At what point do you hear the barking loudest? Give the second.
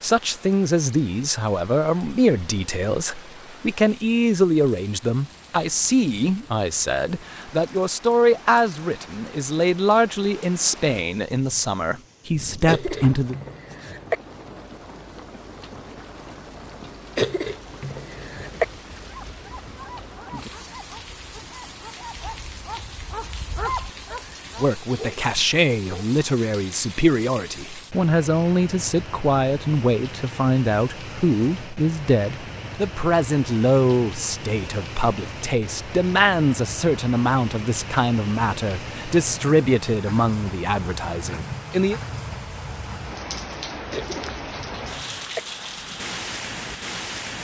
24 s.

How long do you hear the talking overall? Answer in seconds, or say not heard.
31 s.